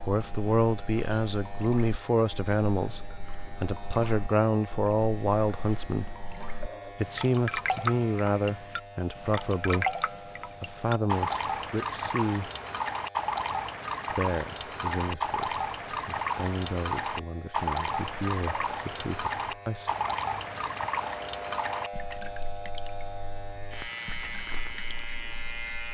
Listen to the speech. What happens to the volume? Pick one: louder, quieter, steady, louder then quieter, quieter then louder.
quieter.